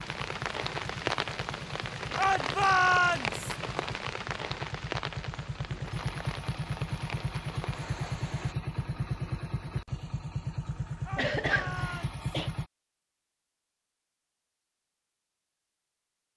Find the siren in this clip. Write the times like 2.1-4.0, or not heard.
not heard.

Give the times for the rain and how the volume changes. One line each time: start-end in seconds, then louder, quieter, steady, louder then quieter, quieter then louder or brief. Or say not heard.
0.0-8.6 quieter.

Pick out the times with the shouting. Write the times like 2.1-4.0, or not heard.
2.1-3.5, 11.1-12.2.